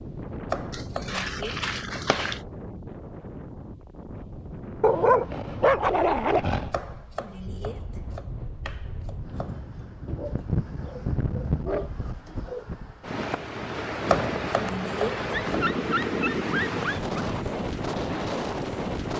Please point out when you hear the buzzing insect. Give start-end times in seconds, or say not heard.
not heard.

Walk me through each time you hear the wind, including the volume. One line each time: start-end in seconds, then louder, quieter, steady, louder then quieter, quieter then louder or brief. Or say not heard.
0.0-19.1 louder.